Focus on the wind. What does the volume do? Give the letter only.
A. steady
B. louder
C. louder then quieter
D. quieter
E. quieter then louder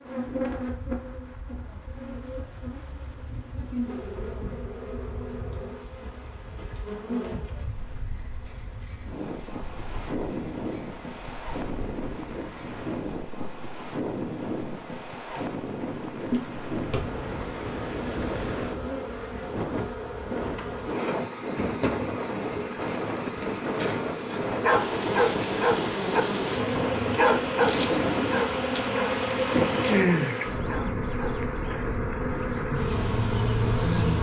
B.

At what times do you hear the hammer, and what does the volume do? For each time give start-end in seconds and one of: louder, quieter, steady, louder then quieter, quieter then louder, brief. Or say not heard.
not heard.